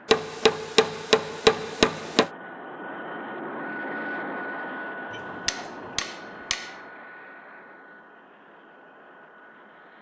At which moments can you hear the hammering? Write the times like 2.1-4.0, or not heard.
0.1-2.3, 5.1-6.8.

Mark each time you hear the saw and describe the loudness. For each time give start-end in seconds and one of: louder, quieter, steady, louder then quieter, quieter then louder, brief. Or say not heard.
not heard.